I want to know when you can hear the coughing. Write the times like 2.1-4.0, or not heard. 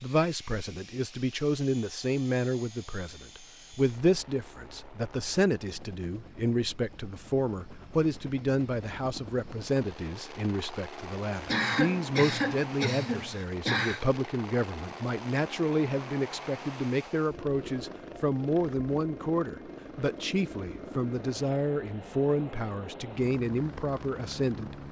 11.4-14.1.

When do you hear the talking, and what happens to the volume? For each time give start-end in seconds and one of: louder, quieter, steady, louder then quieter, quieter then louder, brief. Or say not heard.
0.0-24.8 steady.